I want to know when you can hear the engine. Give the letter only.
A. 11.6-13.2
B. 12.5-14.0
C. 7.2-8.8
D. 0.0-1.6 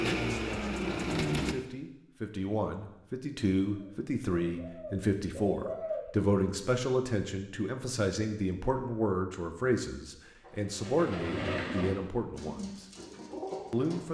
D.